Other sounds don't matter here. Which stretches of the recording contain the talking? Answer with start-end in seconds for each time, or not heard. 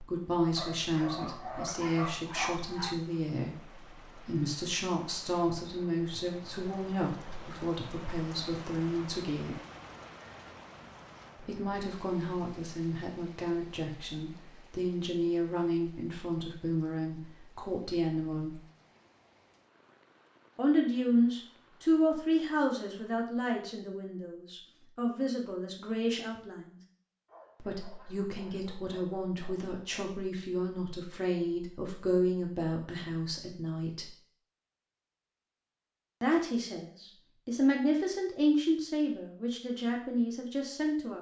0.0-9.6, 11.3-18.6, 20.6-26.8, 27.6-34.1, 36.2-41.1.